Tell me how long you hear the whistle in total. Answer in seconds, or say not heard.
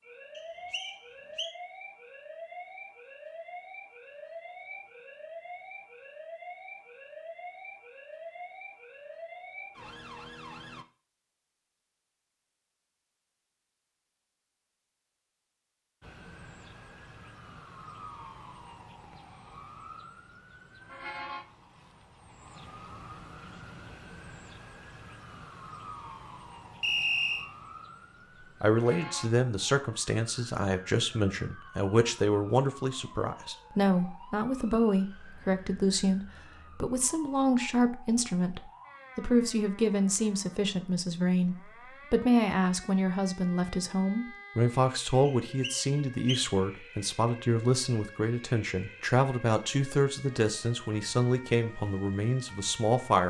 3 s.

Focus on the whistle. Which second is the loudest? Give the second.
27 s.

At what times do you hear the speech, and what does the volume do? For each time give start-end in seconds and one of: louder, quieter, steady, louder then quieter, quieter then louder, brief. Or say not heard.
28.6-53.2 steady.